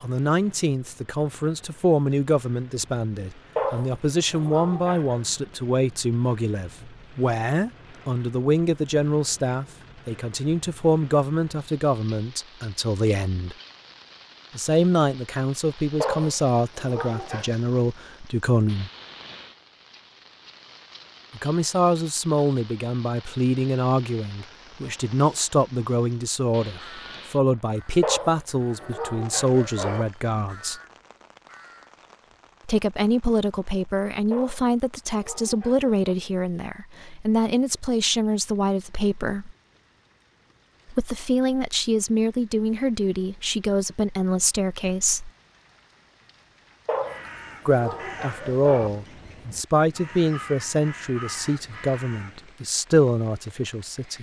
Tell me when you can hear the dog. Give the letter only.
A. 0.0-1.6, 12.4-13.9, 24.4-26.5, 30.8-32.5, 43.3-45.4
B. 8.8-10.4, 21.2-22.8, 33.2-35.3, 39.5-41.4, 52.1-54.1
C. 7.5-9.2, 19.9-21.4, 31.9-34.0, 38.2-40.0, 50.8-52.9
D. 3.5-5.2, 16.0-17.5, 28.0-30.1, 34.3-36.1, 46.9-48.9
D.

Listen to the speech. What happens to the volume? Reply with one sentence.
The loudness of the speech stays about the same.